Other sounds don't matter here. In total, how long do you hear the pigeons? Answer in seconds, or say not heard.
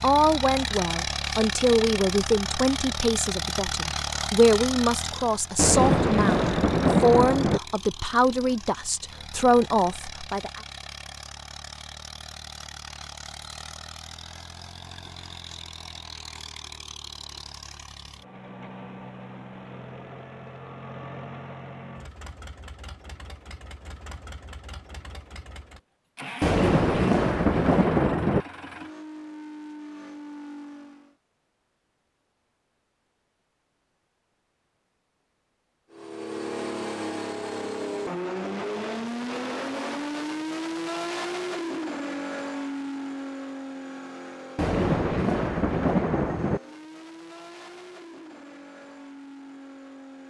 not heard.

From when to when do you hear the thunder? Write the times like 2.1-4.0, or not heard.
5.5-7.6, 26.4-28.4, 44.5-46.6.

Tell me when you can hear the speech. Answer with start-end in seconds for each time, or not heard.
0.0-10.6.